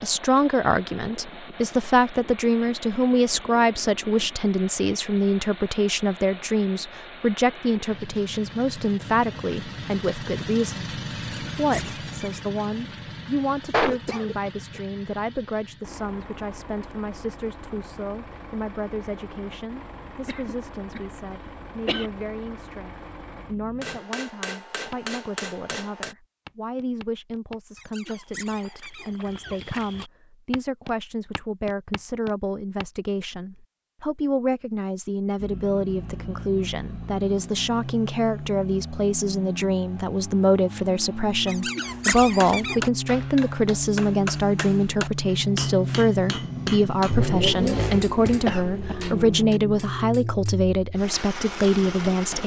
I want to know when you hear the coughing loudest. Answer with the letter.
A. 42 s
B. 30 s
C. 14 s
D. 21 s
C.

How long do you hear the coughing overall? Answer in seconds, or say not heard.
4 s.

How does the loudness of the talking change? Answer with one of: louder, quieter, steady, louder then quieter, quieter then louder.
quieter then louder.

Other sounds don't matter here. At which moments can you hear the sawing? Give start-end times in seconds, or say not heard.
not heard.